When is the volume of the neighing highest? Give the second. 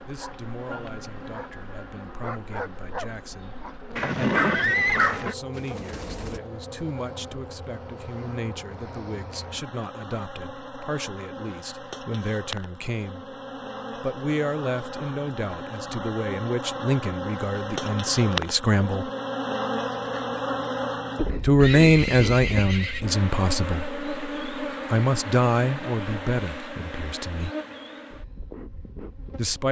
5 s.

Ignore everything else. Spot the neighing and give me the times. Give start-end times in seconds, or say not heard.
4.0-5.3, 21.6-23.1.